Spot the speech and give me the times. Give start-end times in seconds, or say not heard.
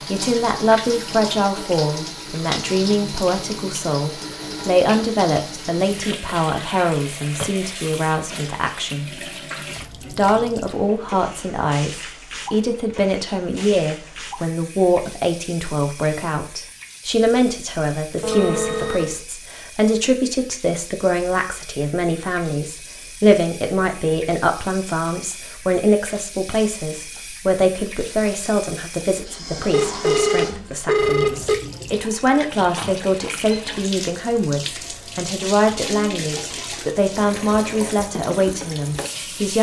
0.0-9.2, 10.0-39.5.